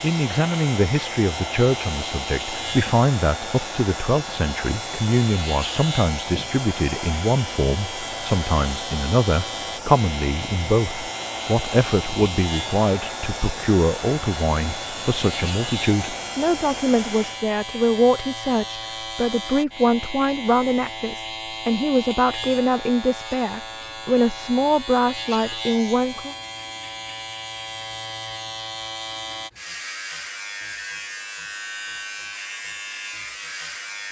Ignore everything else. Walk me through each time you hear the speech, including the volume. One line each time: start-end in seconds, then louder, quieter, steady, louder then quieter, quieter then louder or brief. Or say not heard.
0.0-26.4 steady.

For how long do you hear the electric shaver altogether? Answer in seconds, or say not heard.
34 s.